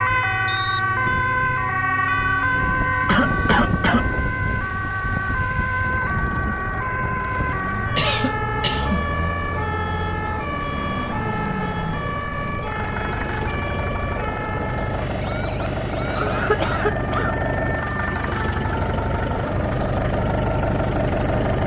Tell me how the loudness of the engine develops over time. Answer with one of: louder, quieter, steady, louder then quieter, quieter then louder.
louder.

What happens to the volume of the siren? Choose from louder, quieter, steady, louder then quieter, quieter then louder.
quieter.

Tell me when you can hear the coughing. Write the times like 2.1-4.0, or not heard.
3.0-4.1, 8.0-9.1, 16.1-17.4.